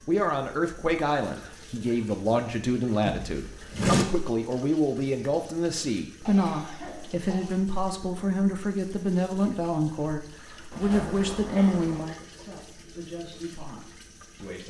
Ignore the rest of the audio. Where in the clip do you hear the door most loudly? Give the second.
4 s.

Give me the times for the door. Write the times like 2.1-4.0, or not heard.
3.0-4.0, 10.7-12.1.